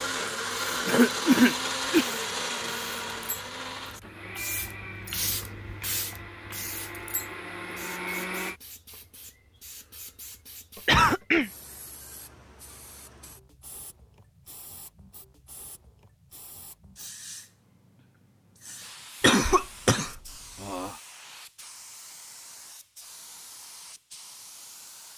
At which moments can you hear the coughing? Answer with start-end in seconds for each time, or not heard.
0.8-2.0, 10.8-11.5, 19.2-20.9.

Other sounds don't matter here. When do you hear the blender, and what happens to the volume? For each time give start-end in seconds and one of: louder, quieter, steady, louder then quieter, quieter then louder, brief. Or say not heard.
0.0-8.6 quieter then louder.